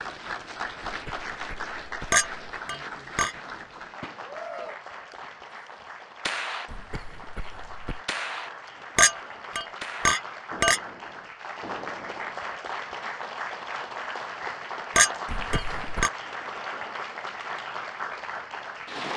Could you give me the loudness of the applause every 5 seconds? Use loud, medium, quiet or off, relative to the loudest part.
loud, medium, loud, loud.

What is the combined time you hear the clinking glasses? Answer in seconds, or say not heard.
4 s.